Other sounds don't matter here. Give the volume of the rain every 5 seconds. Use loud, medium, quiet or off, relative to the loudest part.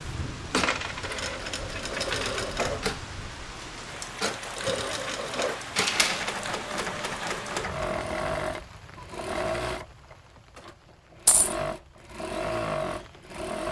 loud, loud, quiet.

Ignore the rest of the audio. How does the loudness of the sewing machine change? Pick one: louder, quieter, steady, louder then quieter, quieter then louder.
steady.